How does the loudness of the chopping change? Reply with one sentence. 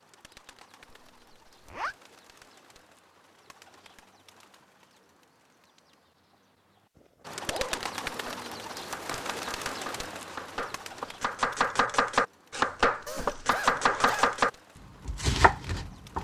The volume of the chopping goes up.